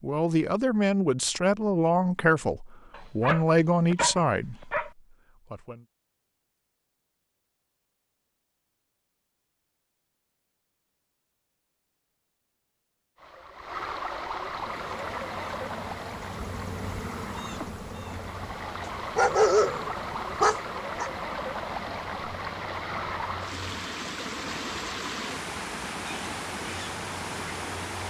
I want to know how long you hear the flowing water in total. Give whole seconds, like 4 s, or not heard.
15 s.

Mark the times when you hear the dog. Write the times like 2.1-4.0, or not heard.
3.0-4.9, 19.1-21.1.